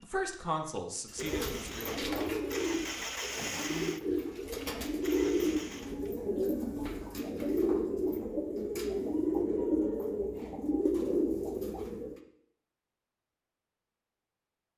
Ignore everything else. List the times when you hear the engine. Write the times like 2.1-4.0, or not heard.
0.0-6.2.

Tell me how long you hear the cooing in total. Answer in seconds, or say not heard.
11 s.